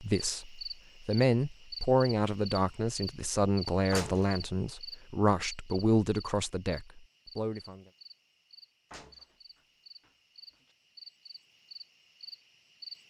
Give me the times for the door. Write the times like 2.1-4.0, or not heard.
3.9-4.4, 8.9-10.8.